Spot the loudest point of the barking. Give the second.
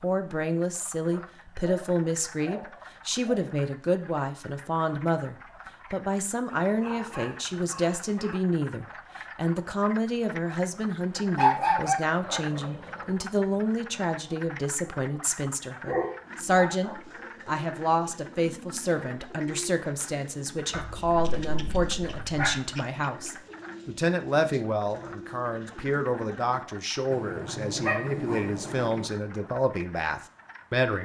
12 s.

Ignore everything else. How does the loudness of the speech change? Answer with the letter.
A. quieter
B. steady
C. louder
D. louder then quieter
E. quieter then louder
B.